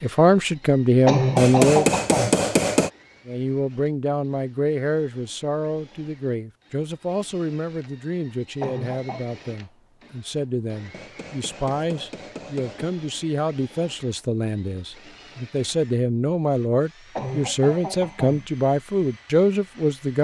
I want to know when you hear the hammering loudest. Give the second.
2 s.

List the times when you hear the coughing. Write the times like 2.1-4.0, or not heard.
1.1-2.4, 8.6-9.2, 17.1-18.4.